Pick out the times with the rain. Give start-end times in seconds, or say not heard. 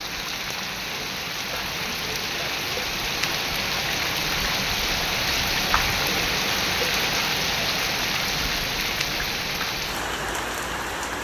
0.0-11.1.